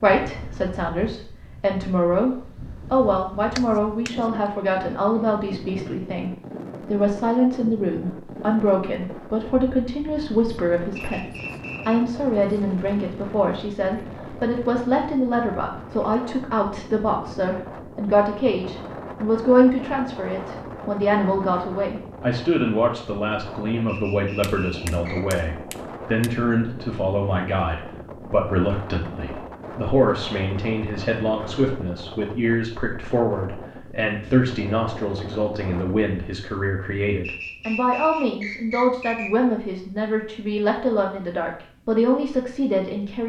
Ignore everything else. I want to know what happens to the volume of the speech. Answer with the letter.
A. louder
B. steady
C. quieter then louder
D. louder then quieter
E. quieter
B.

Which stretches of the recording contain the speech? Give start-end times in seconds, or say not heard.
0.0-43.2.